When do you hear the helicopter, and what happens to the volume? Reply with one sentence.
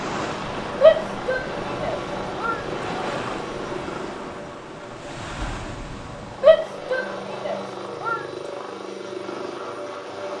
You can hear the helicopter from 0.2 to 10.3 s, getting quieter then louder.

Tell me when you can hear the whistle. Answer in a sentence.
You can't hear the whistle here.